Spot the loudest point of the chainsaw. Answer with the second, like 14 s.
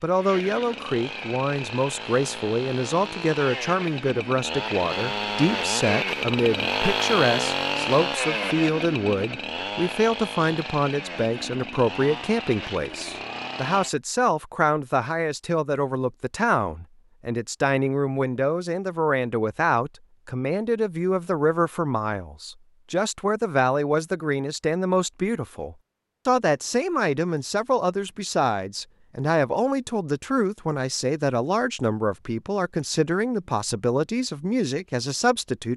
7 s.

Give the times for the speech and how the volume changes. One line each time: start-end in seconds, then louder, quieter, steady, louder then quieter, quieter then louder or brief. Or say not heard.
0.0-35.7 steady.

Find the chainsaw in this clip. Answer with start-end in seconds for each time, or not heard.
0.1-13.9.